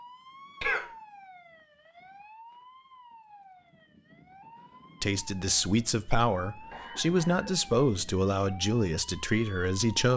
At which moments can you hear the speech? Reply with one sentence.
You can hear the speech from 5.0 to 10.1 s.